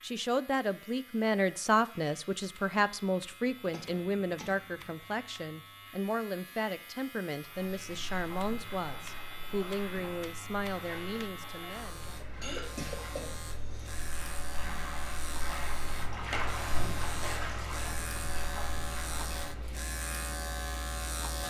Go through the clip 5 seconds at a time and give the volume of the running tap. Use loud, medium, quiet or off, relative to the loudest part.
off, medium, medium, loud, off.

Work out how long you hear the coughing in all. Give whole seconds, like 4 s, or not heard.
3 s.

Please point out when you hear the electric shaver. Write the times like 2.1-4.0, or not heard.
0.0-21.4.